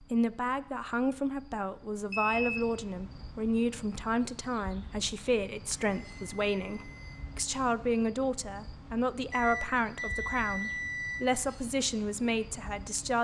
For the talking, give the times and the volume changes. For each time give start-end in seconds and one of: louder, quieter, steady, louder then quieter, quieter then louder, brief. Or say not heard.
0.0-13.2 steady.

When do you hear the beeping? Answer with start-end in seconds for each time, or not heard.
2.1-2.7, 5.2-7.2, 9.3-11.3.